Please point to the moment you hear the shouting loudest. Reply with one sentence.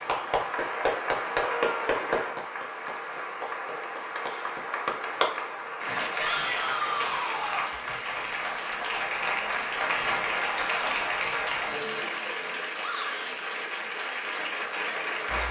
The loudest moment of the shouting is at 7 seconds.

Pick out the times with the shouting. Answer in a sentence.
You can hear the shouting from 1.4 to 2.0 s, from 6.2 to 7.8 s and from 12.8 to 13.3 s.